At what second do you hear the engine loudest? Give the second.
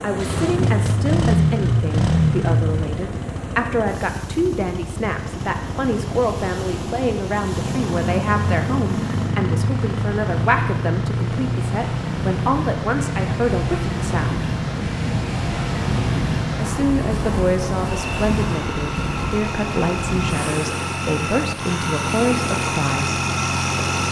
2 s.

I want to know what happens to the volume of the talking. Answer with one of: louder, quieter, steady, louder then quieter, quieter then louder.
steady.